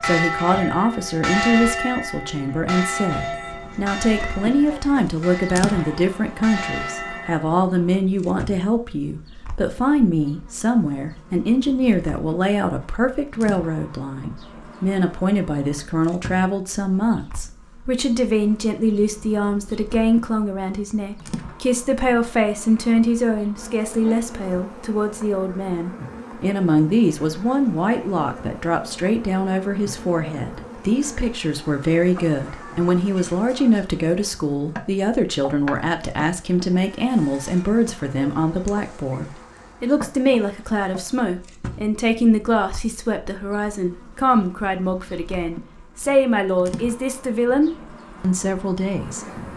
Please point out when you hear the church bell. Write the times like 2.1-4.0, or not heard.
0.0-7.5.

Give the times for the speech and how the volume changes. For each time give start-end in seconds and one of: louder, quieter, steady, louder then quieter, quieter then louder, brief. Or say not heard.
0.0-49.2 steady.